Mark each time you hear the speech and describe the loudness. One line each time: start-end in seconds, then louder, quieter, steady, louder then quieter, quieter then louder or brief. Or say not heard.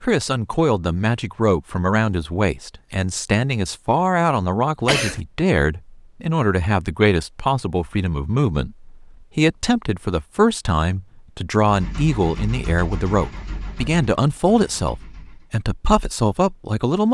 0.0-17.0 steady.